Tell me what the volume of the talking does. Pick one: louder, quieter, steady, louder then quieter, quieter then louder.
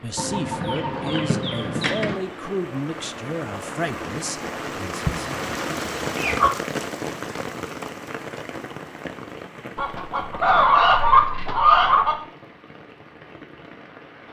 quieter.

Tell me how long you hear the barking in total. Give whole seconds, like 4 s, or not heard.
not heard.